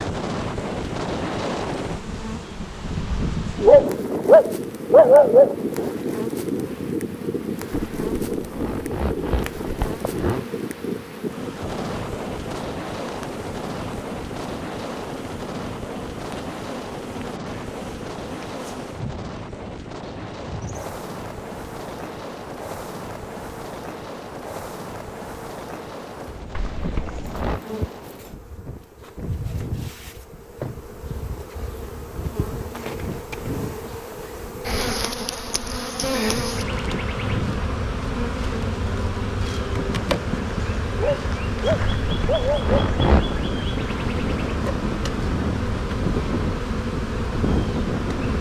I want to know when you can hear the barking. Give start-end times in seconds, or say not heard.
3.5-5.5, 40.9-42.8.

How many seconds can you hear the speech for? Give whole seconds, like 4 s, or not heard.
not heard.